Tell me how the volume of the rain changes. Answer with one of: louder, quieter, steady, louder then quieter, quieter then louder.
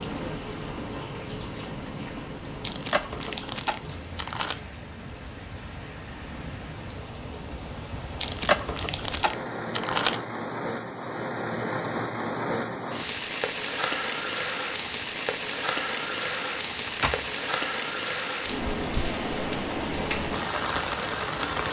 louder.